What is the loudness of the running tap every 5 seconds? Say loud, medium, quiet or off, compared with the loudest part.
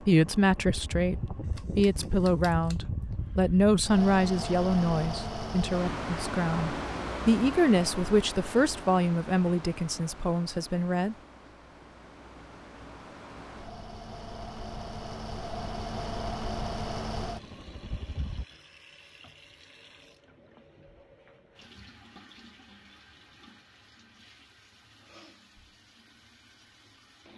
off, off, off, loud, loud, loud.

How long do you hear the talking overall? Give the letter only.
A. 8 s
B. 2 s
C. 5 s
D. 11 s
D.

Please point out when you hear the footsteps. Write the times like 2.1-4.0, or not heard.
not heard.